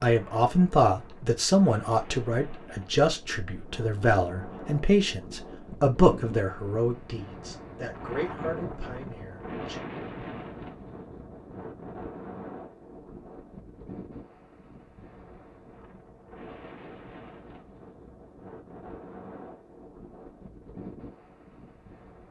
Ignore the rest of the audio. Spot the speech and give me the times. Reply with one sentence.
The speech can be heard from 0.0 to 9.8 s.